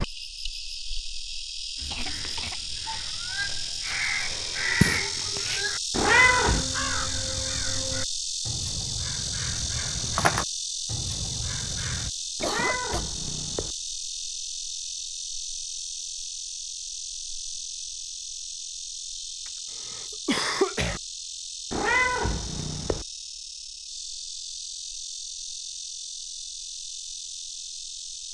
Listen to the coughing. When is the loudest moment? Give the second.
20 s.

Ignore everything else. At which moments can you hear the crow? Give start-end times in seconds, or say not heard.
1.8-12.1.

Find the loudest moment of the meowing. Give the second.
6 s.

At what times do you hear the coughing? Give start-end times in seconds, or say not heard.
1.9-3.0, 12.4-13.1, 19.9-21.0.